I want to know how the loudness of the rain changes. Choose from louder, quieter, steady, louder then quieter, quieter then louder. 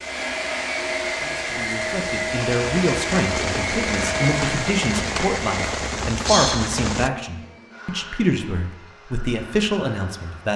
louder.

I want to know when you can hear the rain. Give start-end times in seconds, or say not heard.
0.0-7.1.